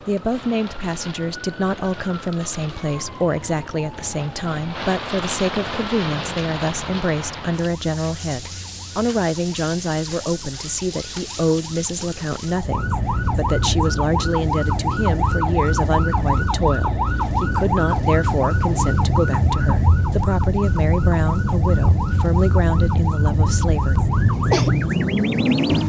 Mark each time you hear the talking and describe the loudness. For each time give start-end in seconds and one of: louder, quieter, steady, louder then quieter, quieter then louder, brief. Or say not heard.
0.1-23.9 steady.